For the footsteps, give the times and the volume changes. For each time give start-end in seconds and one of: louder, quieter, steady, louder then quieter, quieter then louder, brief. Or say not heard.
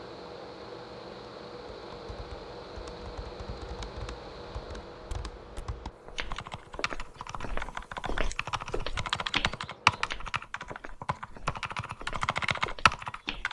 4.9-13.4 louder then quieter.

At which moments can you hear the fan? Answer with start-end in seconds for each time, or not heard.
0.0-10.2.